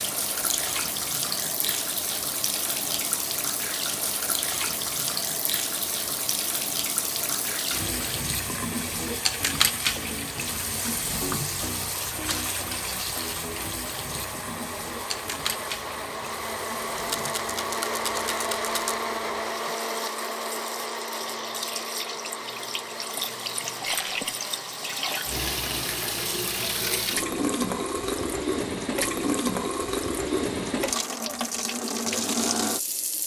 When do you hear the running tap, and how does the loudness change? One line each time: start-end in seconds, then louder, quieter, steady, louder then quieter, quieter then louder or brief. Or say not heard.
0.0-33.2 quieter then louder.